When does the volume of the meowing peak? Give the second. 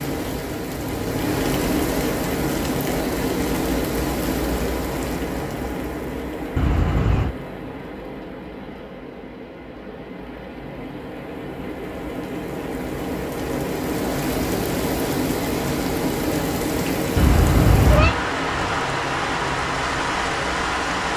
18 s.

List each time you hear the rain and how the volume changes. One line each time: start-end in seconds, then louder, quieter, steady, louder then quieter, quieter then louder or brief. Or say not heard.
0.0-21.1 quieter then louder.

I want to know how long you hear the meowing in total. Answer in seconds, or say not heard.
2 s.